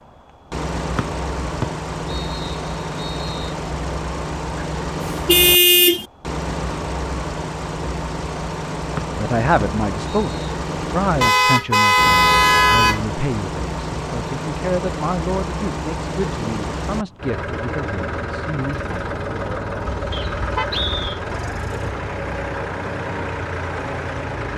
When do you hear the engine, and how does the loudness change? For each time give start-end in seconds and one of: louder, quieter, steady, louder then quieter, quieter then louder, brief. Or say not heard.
0.0-24.5 steady.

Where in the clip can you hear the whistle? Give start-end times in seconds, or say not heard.
0.9-3.5, 8.9-10.4, 20.1-21.2.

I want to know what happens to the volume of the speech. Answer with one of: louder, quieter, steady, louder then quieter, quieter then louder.
quieter.